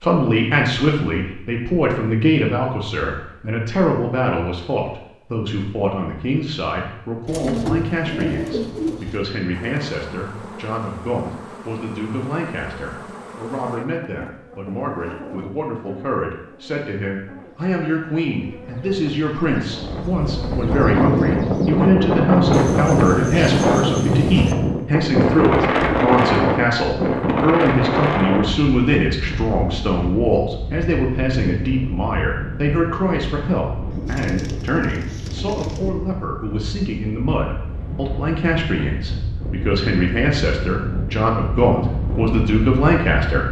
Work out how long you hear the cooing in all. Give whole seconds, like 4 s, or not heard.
6 s.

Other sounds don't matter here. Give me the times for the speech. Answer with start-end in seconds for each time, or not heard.
0.0-43.4.